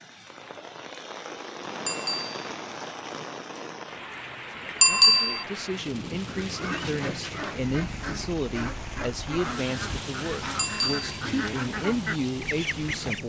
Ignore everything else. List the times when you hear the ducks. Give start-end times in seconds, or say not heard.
6.2-13.2.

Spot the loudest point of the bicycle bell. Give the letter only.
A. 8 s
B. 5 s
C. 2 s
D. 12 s
B.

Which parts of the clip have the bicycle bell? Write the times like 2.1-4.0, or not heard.
1.9-2.4, 4.8-5.5, 10.6-11.2.